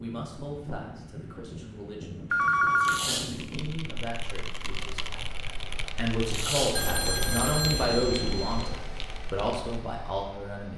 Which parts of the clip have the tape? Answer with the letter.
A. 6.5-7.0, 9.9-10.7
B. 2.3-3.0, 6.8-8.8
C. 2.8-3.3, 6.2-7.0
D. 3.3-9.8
C.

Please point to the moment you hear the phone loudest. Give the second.
3 s.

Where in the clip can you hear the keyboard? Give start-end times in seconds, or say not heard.
3.3-9.8.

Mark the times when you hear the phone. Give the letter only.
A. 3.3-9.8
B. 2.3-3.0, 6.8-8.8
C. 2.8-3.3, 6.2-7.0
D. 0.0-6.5
B.